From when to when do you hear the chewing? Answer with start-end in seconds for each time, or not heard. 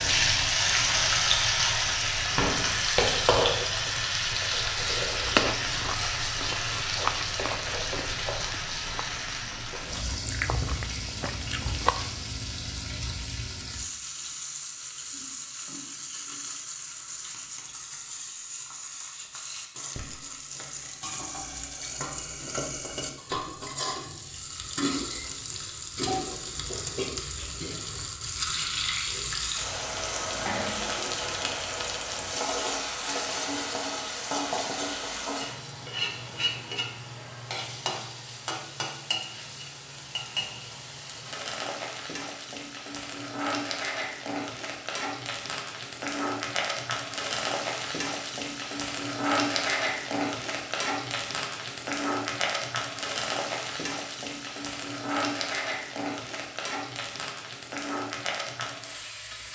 5.2-11.9.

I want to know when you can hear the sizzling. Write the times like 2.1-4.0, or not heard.
0.0-59.5.